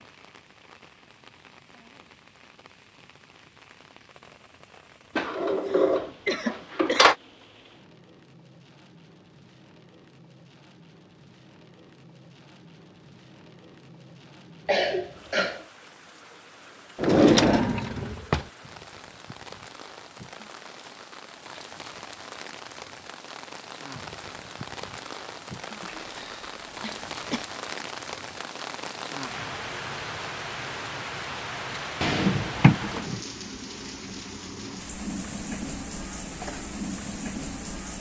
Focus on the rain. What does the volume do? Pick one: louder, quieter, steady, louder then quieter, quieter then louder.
louder.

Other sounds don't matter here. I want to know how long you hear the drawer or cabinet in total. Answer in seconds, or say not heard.
5 s.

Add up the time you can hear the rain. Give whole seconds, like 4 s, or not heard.
38 s.